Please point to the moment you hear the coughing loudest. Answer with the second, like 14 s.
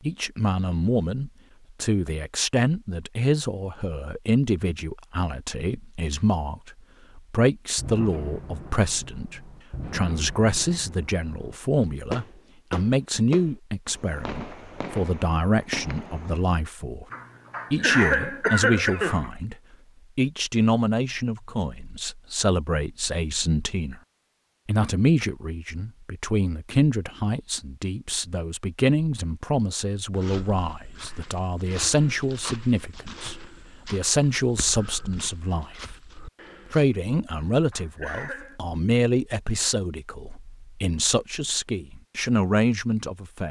18 s.